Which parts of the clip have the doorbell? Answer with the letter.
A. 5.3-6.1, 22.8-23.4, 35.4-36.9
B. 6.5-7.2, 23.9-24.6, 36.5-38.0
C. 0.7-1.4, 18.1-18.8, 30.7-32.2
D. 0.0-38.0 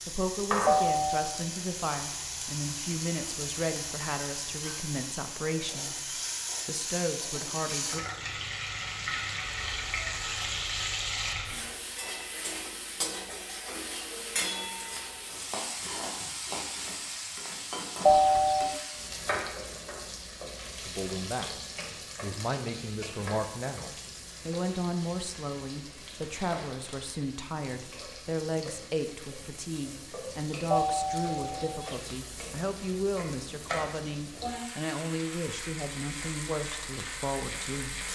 C.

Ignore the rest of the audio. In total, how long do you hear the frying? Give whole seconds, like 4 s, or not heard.
38 s.